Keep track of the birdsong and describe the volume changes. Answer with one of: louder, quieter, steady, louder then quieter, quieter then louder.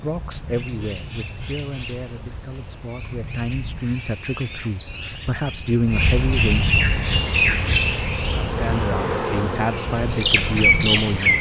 louder.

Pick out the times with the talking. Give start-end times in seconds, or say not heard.
0.0-6.7, 8.4-11.3.